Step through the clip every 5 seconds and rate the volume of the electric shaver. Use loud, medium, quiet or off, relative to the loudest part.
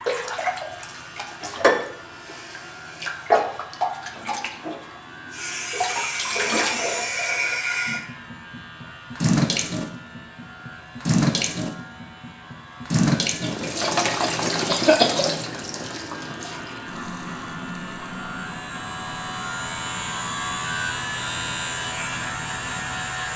quiet, quiet, quiet, medium, loud.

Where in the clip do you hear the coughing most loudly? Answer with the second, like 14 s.
15 s.